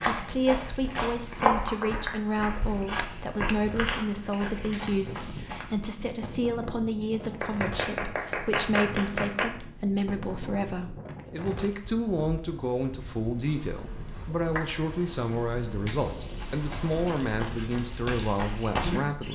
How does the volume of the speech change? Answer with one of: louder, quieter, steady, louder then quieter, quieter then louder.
steady.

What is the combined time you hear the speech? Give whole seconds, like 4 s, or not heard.
19 s.